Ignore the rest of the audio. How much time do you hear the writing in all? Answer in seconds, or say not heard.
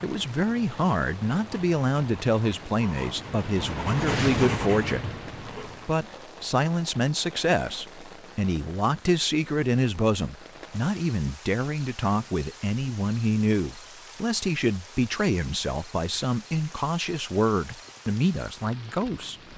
6 s.